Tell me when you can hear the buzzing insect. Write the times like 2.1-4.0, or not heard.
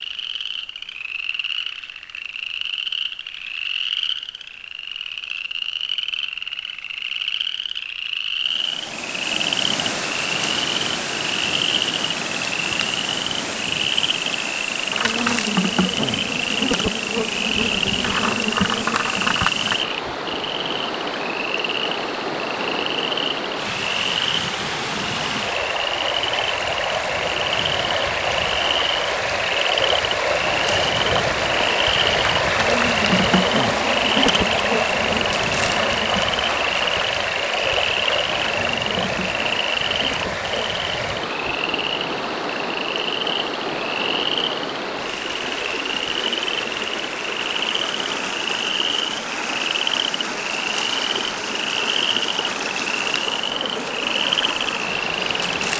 14.9-19.8, 30.9-40.8.